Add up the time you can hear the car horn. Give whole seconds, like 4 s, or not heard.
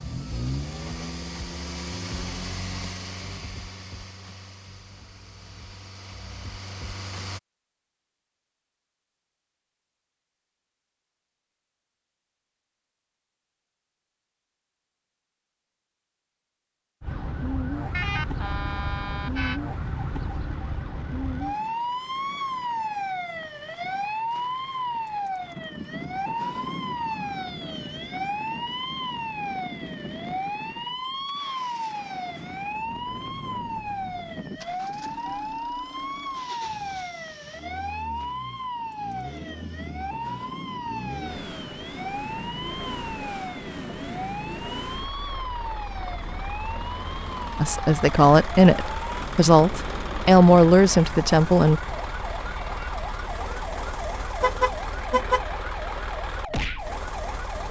3 s.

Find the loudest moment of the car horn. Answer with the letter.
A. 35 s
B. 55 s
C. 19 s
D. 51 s
B.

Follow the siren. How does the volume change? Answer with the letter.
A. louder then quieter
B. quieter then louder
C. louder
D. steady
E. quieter
E.